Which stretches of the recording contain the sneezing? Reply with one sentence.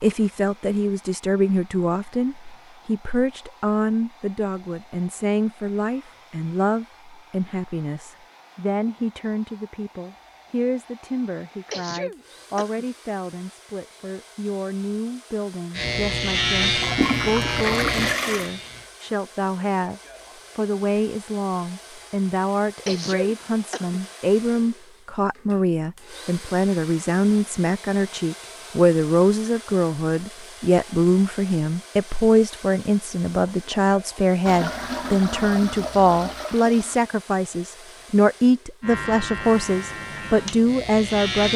You can hear the sneezing from 11.7 to 12.8 s and from 22.9 to 24.0 s.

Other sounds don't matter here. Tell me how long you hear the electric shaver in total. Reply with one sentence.
You can hear the electric shaver for 6 seconds altogether.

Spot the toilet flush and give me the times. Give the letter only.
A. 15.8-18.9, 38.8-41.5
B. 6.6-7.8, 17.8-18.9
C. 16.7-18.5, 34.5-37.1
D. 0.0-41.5
C.